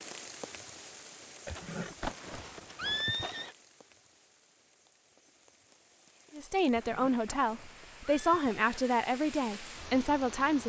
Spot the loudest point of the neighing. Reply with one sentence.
The volume of the neighing peaks at 3 seconds.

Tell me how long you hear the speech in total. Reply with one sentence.
The speech can be heard for 4 seconds in total.